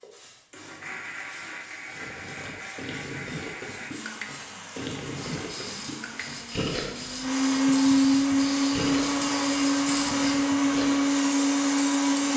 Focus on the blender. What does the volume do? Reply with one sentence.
The volume of the blender goes up.